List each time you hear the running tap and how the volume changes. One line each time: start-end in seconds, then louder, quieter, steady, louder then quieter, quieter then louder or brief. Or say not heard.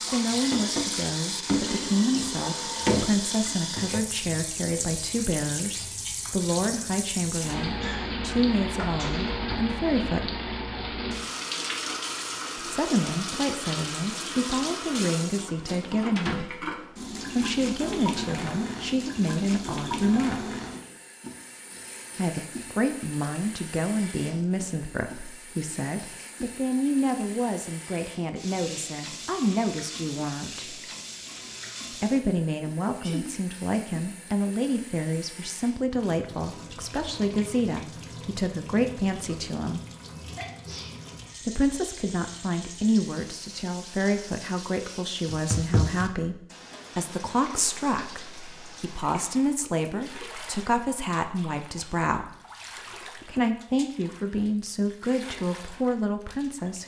0.0-56.8 quieter.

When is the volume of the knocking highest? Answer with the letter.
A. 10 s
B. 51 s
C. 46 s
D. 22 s
C.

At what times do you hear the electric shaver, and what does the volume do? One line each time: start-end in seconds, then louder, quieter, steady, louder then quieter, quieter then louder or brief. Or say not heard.
not heard.